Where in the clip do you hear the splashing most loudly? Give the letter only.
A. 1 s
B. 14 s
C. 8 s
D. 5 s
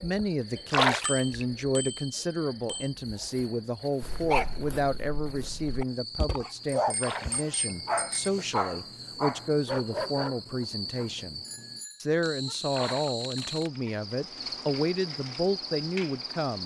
A.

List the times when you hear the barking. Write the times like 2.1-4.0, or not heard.
4.0-10.7.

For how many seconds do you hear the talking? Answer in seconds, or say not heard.
16 s.